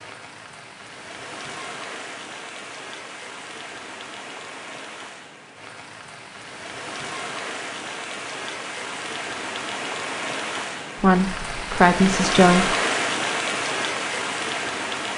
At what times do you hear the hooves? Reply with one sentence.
The hooves can't be heard in this clip.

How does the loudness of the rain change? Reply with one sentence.
The volume of the rain goes up.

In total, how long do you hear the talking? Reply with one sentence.
You can hear the talking for 2 seconds altogether.